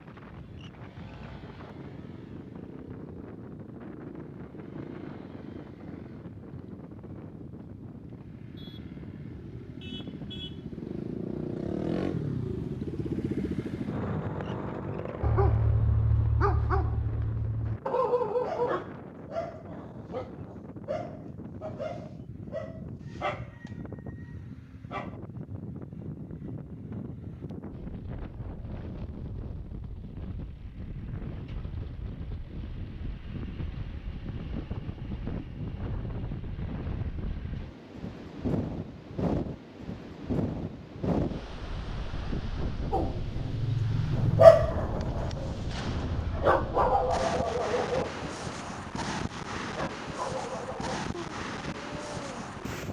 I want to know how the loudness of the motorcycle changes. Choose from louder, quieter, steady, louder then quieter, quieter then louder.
louder.